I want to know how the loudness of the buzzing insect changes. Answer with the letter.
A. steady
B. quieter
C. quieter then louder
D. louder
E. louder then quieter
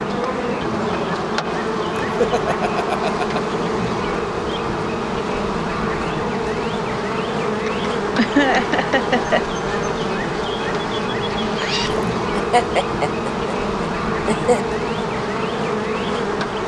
A.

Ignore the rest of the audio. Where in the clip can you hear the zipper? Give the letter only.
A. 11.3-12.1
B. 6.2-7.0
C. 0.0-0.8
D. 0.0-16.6
A.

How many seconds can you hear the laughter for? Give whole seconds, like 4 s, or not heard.
6 s.